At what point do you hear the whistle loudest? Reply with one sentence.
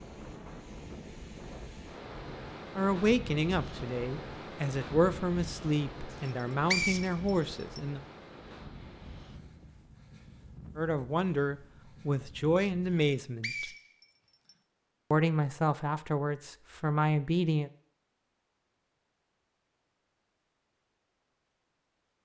The loudest moment of the whistle is at 7 seconds.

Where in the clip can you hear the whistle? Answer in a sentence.
The whistle can be heard from 6.2 to 7.8 s and from 12.9 to 14.6 s.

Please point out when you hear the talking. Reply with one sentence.
You can hear the talking from 2.8 to 8.0 s, from 10.8 to 13.7 s and from 15.1 to 17.7 s.